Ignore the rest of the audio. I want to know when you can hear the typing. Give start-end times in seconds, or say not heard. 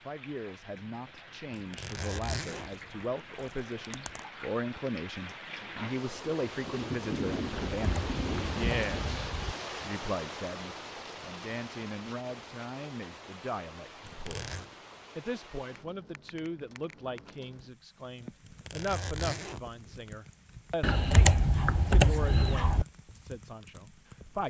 7.5-9.6, 20.8-22.9.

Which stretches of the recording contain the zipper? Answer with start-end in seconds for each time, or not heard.
1.5-4.2, 14.0-14.7, 18.4-20.1.